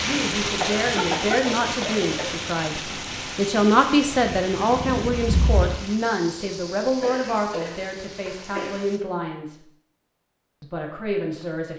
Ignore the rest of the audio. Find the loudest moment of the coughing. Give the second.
1 s.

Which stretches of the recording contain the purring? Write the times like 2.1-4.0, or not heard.
4.1-5.9.